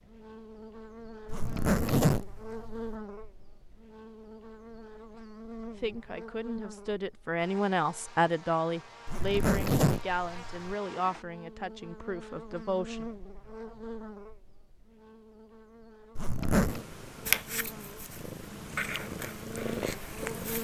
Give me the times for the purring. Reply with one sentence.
You can hear the purring from 16.6 to 20.5 s.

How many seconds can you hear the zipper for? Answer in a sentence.
The zipper can be heard for 4 seconds in total.